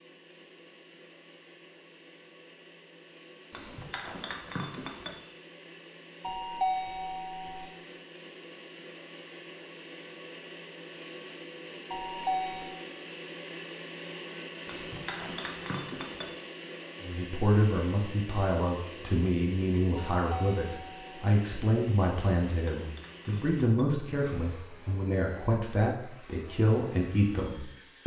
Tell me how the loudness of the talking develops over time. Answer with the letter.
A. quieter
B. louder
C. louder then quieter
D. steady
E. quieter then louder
D.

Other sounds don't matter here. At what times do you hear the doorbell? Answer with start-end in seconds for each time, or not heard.
6.2-7.7, 11.9-12.8, 20.2-21.2.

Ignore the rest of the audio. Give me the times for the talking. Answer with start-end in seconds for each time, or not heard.
17.0-28.0.